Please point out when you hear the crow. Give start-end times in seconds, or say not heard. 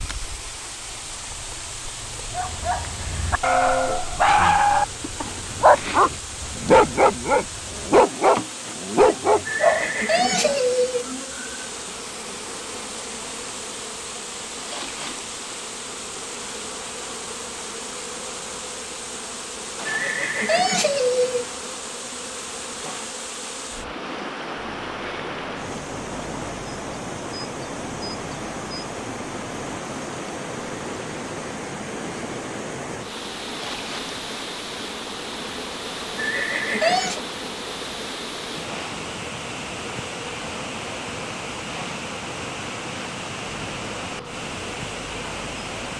not heard.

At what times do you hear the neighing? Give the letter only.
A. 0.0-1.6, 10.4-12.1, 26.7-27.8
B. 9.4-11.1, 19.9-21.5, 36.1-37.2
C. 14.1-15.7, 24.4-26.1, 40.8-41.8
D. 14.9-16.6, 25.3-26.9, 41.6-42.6
B.